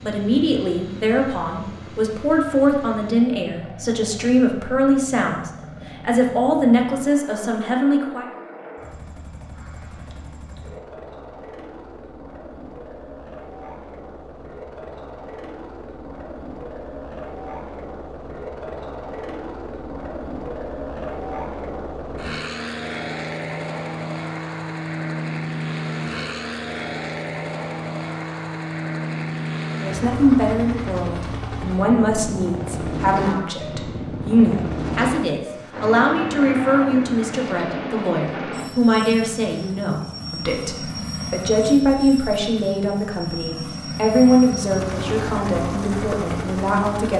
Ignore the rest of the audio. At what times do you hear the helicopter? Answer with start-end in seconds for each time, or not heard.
0.0-47.1.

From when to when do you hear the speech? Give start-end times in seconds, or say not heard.
0.0-8.2, 29.8-47.1.